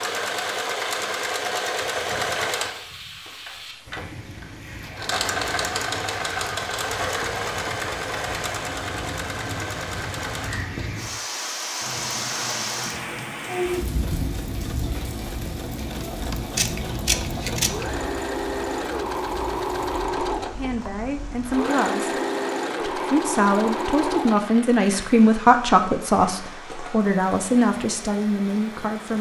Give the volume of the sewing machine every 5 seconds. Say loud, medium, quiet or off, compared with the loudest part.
loud, loud, medium, loud, loud, off.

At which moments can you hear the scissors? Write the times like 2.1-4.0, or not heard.
16.6-17.9.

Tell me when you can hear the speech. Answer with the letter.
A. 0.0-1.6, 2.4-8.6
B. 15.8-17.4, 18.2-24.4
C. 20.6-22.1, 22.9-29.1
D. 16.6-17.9
C.